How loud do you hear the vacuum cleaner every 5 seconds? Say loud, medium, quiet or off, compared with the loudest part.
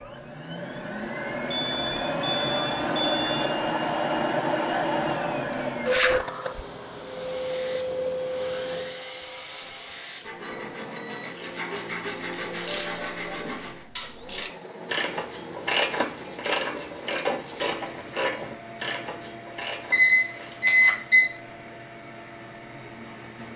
loud, loud, quiet, quiet, quiet.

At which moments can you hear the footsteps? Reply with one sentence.
You can't hear the footsteps here.